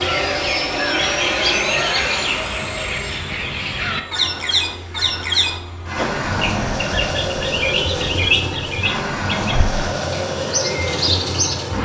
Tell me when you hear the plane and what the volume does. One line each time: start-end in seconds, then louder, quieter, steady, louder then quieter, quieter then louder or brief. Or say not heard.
0.0-11.7 quieter then louder.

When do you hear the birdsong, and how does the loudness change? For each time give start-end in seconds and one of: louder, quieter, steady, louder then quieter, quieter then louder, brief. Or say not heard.
0.0-11.7 steady.